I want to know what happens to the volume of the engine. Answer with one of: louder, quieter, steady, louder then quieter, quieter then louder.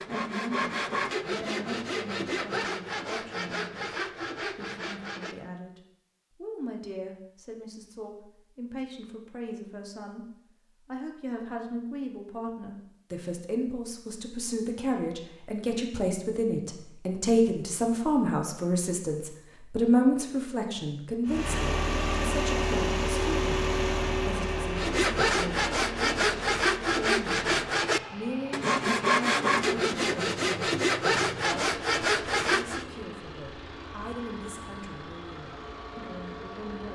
quieter.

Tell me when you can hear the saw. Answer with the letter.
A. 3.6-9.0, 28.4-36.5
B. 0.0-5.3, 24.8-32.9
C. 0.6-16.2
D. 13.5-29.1
B.